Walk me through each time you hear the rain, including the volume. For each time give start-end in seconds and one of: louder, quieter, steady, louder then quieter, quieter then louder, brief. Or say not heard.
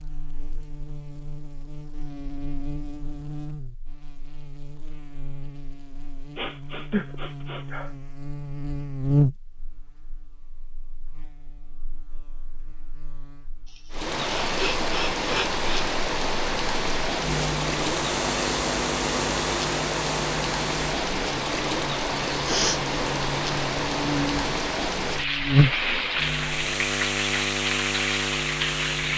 13.9-29.1 steady.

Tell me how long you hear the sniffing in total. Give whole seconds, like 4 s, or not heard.
3 s.